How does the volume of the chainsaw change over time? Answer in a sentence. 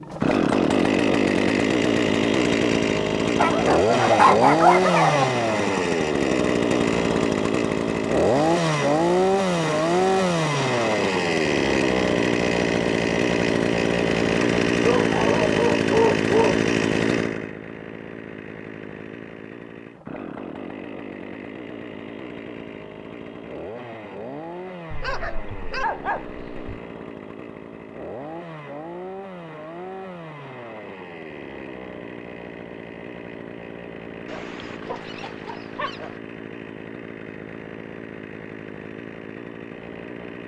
The volume of the chainsaw goes down.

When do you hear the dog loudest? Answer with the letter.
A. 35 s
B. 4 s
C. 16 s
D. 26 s
B.